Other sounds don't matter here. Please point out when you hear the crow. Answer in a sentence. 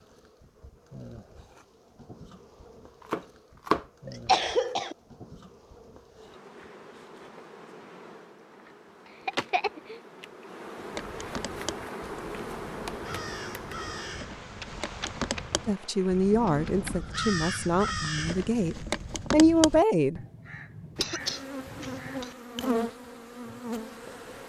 You can hear the crow from 10.9 to 22.2 s.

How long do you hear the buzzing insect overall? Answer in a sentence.
You can hear the buzzing insect for 20 seconds altogether.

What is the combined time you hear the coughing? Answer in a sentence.
The coughing can be heard for 3 seconds in total.